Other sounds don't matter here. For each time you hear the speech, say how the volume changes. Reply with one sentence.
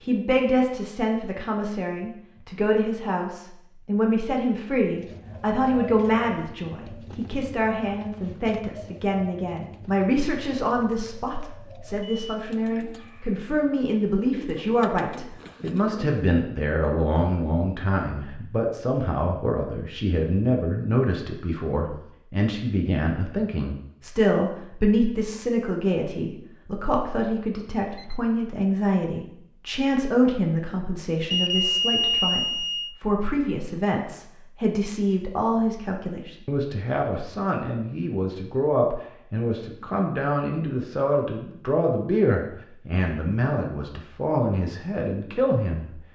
The speech can be heard from 0.0 to 45.9 s, at a steady volume.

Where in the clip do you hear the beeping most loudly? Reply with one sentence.
The volume of the beeping peaks at 32 seconds.